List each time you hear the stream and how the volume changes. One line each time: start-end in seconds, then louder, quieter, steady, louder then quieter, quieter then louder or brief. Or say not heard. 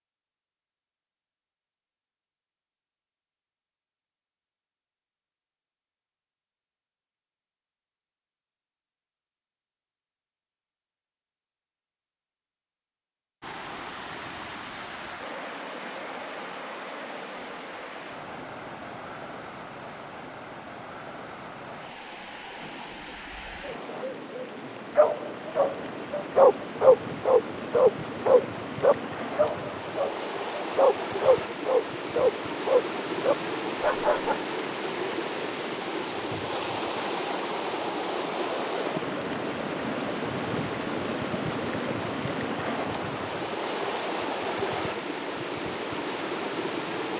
13.4-47.1 louder.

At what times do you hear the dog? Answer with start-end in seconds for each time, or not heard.
24.9-34.4.